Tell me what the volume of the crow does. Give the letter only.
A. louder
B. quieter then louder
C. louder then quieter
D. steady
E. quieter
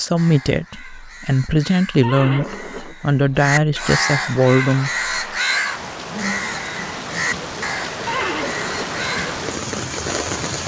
C.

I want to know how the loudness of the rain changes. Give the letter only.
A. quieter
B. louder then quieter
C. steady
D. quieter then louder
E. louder
E.